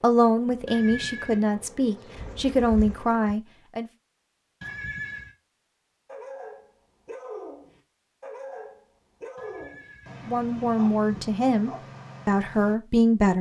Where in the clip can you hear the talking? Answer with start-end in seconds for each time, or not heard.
0.0-3.9, 10.2-13.3.